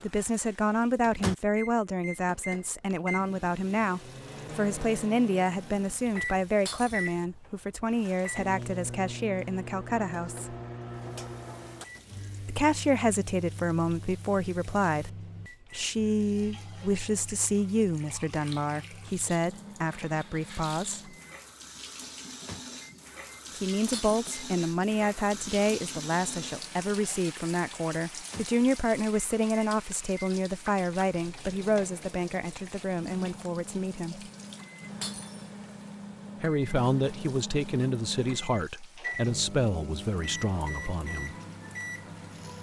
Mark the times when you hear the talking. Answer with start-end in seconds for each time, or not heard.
0.0-10.6, 12.4-21.1, 23.5-34.2, 36.4-41.4.